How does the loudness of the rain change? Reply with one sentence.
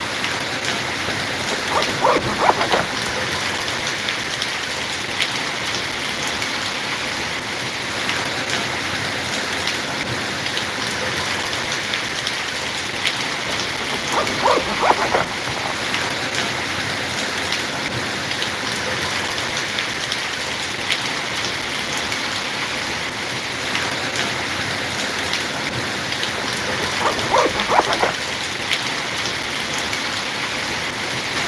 The volume of the rain stays about the same.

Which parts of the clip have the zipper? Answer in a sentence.
The zipper can be heard from 1.1 to 3.2 s, from 13.4 to 15.9 s and from 26.4 to 28.1 s.